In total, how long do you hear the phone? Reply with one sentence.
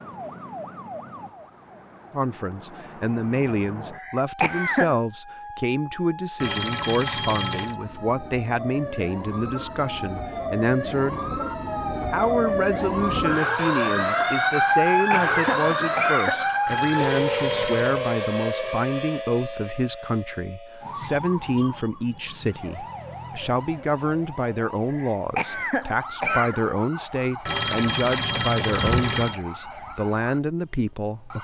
You can hear the phone for 5 seconds altogether.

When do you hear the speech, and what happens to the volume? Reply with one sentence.
The speech can be heard from 2.1 to 11.3 s, at a steady volume; and from 12.1 to 31.3 s, at a steady volume.